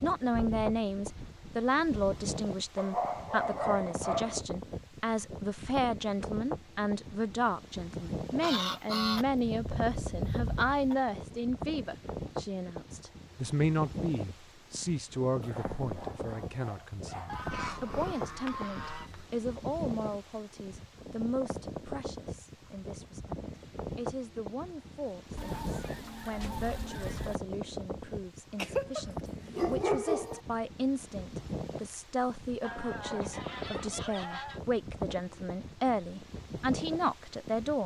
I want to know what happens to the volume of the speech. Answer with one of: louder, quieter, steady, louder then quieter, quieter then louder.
quieter then louder.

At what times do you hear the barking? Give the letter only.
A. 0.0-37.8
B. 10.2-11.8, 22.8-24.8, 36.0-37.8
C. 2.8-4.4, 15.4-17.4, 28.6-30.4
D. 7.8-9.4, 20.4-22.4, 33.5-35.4
C.